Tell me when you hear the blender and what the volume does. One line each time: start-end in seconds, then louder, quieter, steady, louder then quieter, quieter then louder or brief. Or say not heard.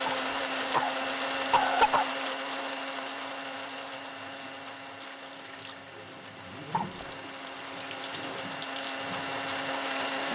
0.0-10.2 quieter then louder.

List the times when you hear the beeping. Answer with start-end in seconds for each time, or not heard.
not heard.